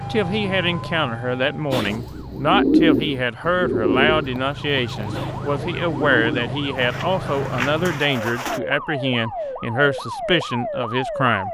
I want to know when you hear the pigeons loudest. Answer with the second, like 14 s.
3 s.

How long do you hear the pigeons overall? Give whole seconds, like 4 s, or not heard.
7 s.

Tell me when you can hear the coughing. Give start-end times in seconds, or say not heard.
not heard.